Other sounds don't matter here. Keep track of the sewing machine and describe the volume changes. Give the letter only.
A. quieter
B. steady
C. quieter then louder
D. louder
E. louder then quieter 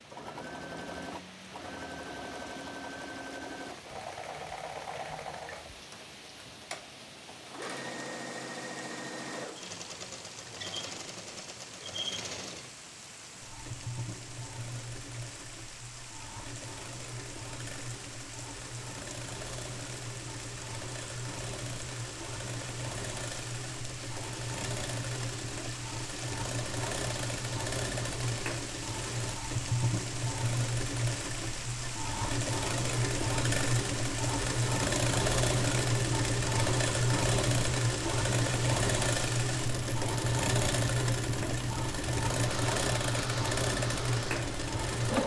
D.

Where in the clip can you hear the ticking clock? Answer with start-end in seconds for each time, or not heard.
not heard.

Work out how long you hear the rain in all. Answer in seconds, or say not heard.
45 s.